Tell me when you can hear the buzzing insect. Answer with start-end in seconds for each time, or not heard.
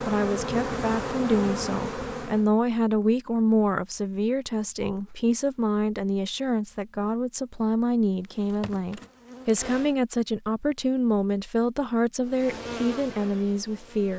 0.0-2.5, 8.2-9.9, 12.2-14.1.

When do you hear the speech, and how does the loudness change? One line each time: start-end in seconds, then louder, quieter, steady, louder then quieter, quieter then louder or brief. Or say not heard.
0.0-14.1 steady.